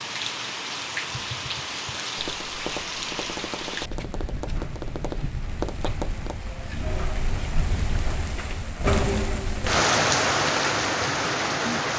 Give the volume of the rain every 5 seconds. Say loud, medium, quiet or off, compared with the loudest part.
medium, medium, loud.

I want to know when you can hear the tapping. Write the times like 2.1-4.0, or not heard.
1.3-6.4.